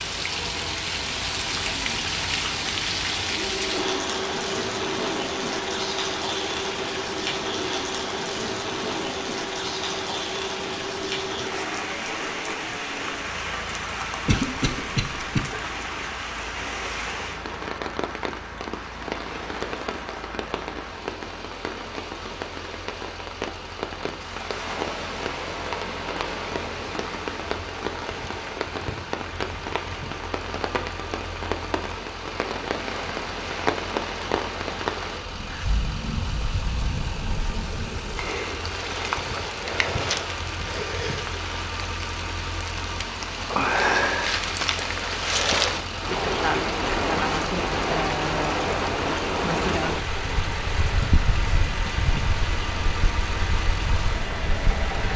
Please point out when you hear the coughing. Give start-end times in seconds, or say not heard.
14.2-15.4.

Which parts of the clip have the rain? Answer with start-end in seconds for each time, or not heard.
0.0-55.1.